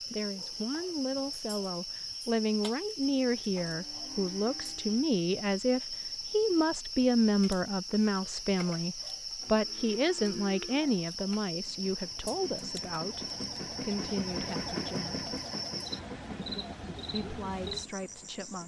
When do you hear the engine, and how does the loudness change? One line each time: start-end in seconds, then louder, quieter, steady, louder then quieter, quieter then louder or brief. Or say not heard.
11.4-18.6 louder then quieter.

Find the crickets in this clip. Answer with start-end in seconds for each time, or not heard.
0.0-18.6.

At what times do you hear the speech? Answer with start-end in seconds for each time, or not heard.
0.1-15.3, 17.1-18.6.